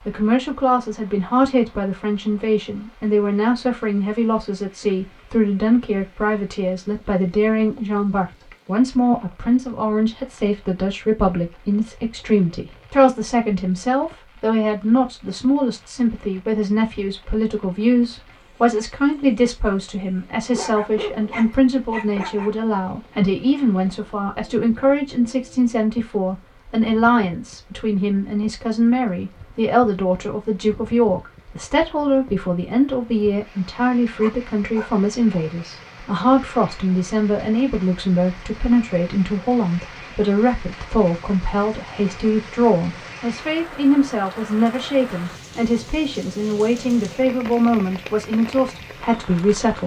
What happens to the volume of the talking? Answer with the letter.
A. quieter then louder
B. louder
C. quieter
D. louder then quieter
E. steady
E.